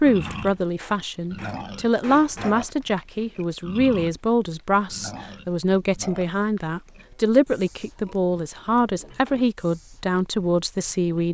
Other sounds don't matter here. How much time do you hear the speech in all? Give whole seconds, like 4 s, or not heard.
11 s.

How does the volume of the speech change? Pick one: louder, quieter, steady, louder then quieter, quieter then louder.
steady.